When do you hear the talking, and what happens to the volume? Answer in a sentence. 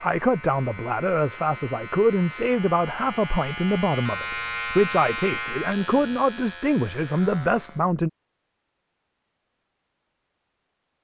The talking can be heard from 0.0 to 8.1 s, at a steady volume.